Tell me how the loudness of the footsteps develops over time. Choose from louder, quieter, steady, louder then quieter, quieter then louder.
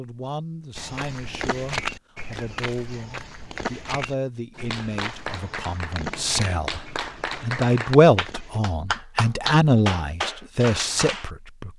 quieter.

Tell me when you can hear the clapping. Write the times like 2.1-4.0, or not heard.
4.5-11.3.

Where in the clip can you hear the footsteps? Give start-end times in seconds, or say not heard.
0.8-8.6.